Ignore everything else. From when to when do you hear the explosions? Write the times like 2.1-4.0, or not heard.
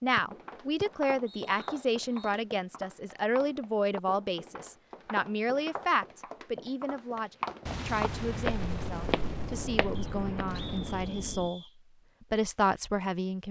7.7-11.5.